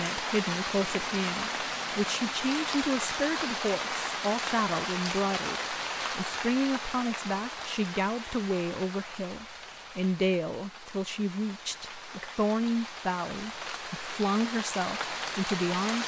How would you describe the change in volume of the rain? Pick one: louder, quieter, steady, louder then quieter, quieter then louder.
quieter then louder.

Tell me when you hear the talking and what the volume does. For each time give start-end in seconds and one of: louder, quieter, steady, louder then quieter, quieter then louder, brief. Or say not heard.
0.0-16.0 steady.